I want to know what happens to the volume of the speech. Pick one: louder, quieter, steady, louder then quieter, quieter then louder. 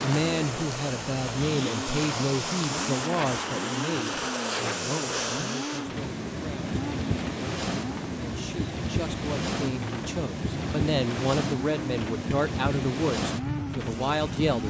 quieter then louder.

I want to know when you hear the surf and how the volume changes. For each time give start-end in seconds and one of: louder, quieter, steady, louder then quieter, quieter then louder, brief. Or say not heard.
0.0-14.6 steady.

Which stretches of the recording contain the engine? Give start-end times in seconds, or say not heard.
0.0-14.6.